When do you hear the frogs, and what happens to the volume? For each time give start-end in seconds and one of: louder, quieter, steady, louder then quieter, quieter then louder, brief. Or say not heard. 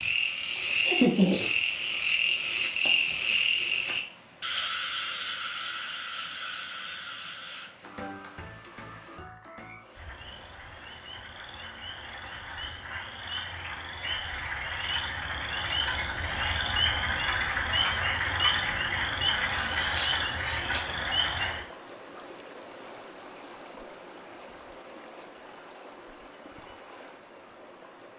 0.0-21.6 quieter then louder.